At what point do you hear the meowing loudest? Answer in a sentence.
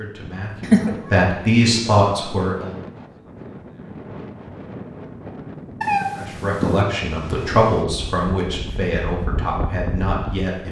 The volume of the meowing peaks at 1 second.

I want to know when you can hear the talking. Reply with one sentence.
The talking can be heard from 0.0 to 2.8 s and from 6.2 to 10.6 s.